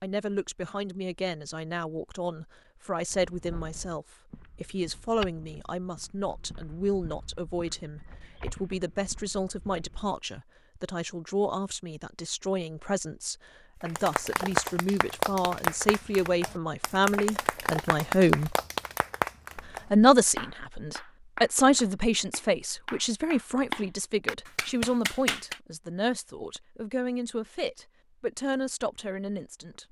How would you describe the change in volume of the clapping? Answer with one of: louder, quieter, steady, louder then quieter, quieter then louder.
quieter then louder.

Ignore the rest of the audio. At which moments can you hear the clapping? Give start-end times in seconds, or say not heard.
13.8-25.6.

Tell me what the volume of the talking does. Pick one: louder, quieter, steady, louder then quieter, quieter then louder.
louder then quieter.